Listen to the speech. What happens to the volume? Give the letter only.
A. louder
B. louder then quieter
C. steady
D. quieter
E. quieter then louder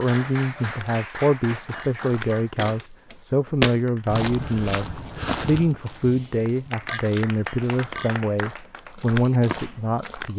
C.